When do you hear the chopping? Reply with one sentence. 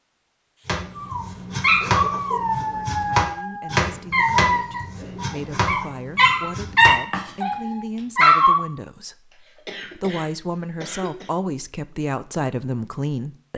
The chopping can be heard from 0.7 to 8.1 s.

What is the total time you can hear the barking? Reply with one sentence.
You can hear the barking for 8 seconds altogether.